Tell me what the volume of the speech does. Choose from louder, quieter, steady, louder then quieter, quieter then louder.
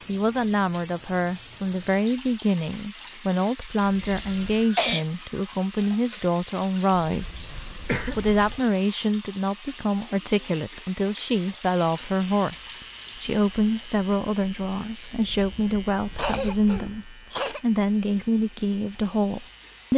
steady.